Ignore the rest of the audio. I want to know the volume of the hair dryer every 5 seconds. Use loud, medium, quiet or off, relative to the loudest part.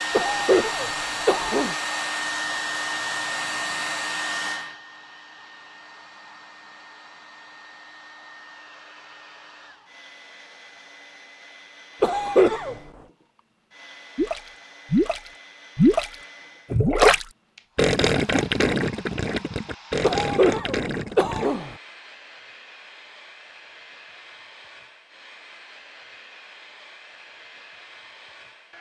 loud, quiet, quiet, quiet, quiet, quiet.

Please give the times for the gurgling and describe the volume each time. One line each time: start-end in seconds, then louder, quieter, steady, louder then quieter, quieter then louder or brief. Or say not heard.
14.2-16.1 brief
16.7-21.5 quieter.